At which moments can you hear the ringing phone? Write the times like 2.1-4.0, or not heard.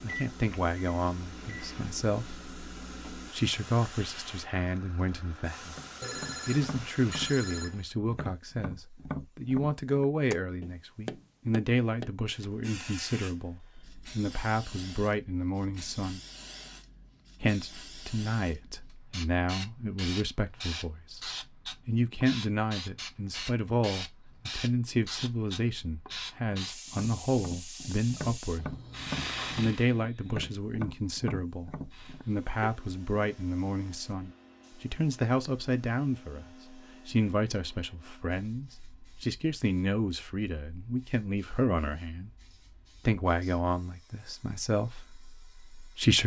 6.0-8.0.